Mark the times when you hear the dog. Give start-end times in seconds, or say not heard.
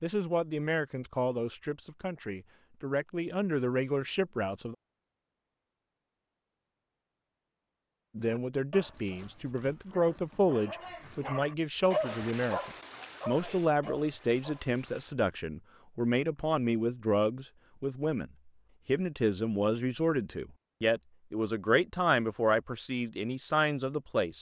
8.2-15.1.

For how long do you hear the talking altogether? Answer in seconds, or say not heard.
21 s.